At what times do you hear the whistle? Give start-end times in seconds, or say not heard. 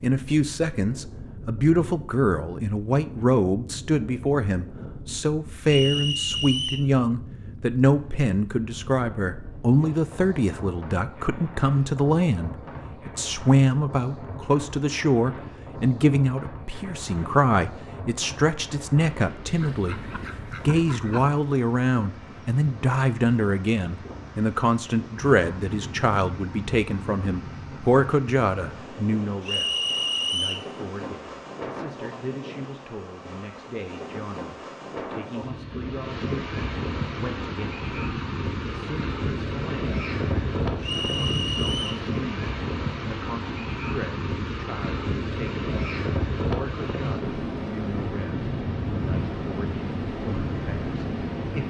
5.7-6.9, 29.4-30.7, 40.8-42.0.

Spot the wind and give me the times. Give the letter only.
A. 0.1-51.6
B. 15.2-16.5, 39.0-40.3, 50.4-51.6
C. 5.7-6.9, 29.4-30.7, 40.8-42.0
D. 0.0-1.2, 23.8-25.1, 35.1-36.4
A.